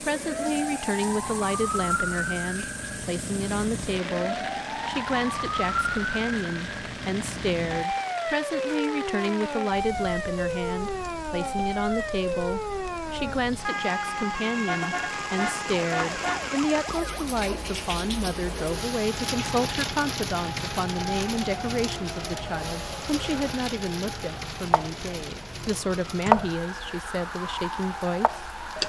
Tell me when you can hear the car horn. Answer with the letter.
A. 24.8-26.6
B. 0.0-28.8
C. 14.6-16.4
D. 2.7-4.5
C.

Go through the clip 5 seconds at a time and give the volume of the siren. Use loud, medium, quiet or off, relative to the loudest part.
loud, loud, loud, medium, medium, loud.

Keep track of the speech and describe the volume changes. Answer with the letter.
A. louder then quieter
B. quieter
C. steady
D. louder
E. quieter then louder
C.